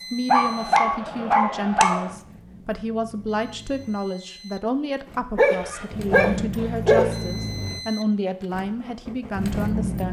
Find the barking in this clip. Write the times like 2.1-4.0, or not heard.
0.2-2.1, 5.3-7.2.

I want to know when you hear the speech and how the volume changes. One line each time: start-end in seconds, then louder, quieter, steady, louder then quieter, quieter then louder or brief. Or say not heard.
0.1-10.0 steady.